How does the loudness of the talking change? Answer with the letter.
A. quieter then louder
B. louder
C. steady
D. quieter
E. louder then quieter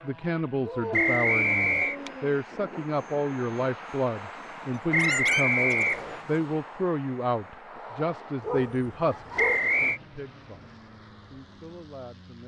D.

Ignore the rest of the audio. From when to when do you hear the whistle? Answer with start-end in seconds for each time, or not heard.
0.9-1.9, 4.9-6.2, 9.3-10.0.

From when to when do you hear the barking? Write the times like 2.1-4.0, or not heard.
0.7-2.4, 4.9-6.5, 8.4-9.6.